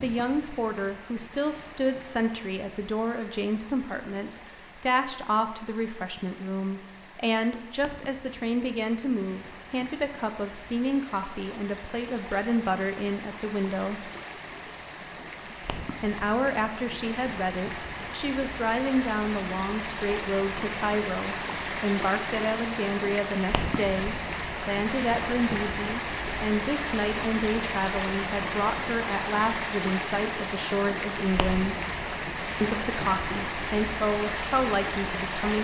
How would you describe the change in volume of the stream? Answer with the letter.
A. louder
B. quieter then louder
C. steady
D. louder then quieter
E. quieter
A.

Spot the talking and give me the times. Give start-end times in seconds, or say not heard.
0.0-14.1, 16.0-31.8, 32.6-35.5.